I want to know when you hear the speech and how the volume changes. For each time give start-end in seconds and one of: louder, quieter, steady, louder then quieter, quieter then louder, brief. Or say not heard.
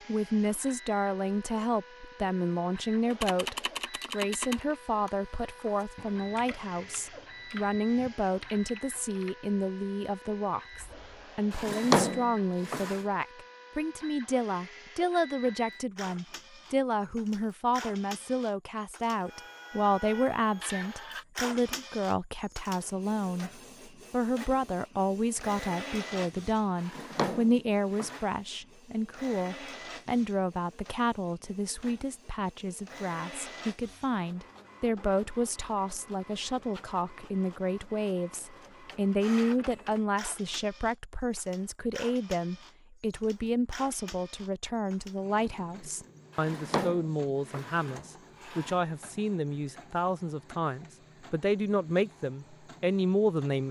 0.1-53.6 steady.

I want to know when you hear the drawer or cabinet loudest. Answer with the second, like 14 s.
12 s.